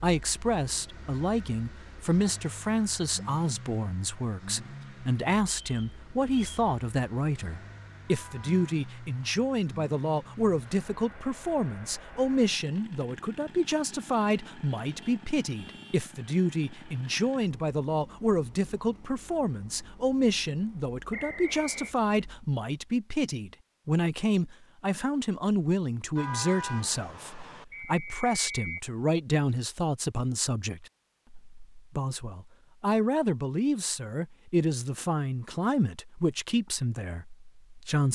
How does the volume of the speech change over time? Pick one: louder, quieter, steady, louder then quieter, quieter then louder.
steady.